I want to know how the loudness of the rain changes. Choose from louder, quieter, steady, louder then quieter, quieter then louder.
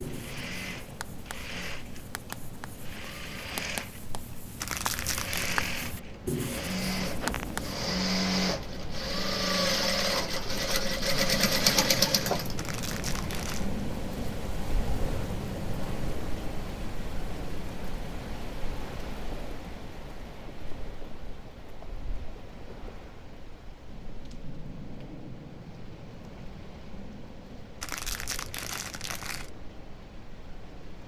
louder then quieter.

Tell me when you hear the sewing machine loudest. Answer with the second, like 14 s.
12 s.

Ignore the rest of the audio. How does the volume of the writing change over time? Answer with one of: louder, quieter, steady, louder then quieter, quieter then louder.
louder.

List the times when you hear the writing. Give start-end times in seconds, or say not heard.
0.0-7.8.